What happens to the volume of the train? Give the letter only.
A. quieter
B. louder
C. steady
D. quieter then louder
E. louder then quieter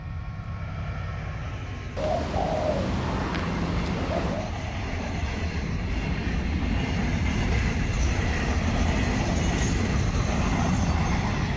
B.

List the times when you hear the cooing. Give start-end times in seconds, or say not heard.
1.9-4.5.